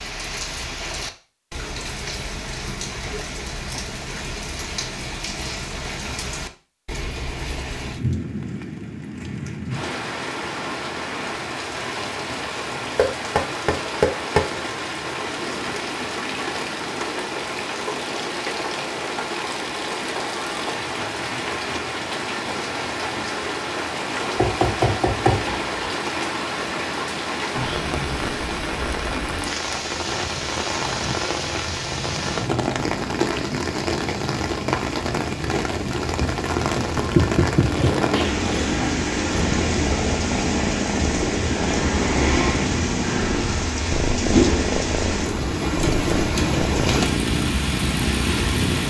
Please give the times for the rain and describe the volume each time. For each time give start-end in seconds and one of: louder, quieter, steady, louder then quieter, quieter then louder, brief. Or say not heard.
0.0-48.8 louder.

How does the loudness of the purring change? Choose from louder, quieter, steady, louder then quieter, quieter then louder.
steady.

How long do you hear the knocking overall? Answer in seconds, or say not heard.
4 s.